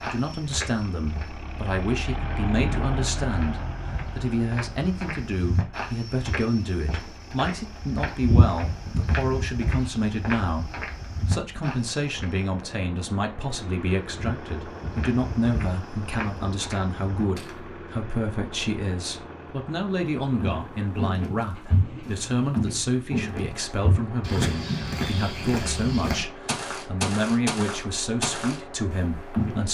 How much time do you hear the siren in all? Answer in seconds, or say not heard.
not heard.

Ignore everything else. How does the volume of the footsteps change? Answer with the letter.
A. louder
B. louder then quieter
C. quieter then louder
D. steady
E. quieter
A.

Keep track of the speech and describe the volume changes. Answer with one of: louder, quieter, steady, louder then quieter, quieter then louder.
steady.